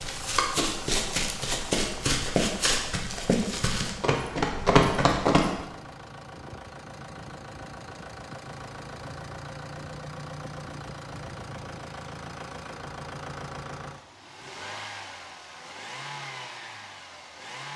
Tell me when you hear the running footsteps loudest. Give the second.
5 s.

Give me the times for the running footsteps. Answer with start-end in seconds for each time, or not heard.
0.0-5.5.